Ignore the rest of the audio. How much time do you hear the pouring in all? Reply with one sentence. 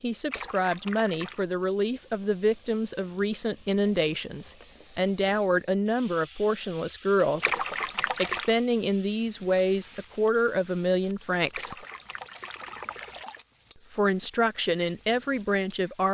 You can hear the pouring for 4 seconds altogether.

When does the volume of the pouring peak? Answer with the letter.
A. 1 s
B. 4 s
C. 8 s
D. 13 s
C.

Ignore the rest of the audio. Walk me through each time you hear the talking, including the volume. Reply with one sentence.
The talking can be heard from 0.0 to 11.8 s, at a steady volume; and briefly from 13.9 to 16.0 s.